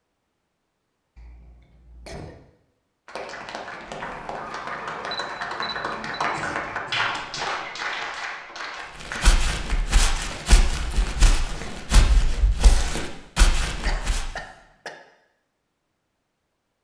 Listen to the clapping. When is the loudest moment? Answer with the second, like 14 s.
7 s.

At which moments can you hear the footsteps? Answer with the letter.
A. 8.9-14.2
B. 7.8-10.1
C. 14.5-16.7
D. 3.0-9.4
A.